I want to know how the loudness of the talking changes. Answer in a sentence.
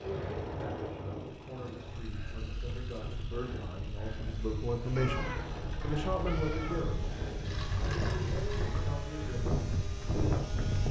The loudness of the talking goes up, then down.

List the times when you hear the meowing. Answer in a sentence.
You can hear the meowing from 5.0 to 6.8 s.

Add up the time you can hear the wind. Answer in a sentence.
You can hear the wind for 11 seconds altogether.